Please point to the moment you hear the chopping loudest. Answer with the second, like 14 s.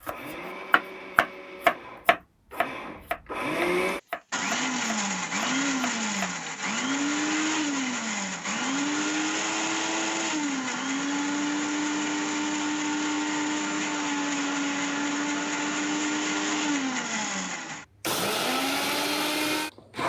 2 s.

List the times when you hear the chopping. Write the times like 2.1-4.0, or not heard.
0.0-6.3.